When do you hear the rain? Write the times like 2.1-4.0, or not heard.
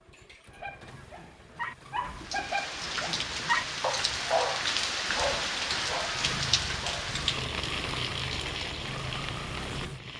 2.1-10.1.